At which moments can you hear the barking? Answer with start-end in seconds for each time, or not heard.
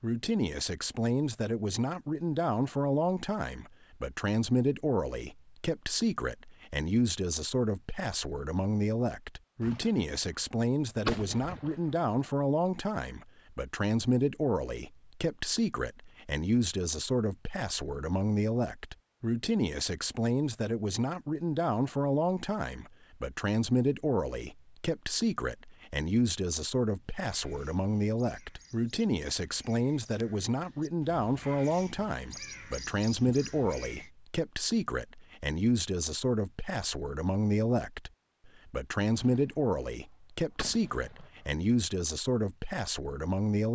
not heard.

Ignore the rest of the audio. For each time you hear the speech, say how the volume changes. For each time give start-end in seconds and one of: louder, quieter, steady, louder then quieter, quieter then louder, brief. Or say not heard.
0.0-43.7 steady.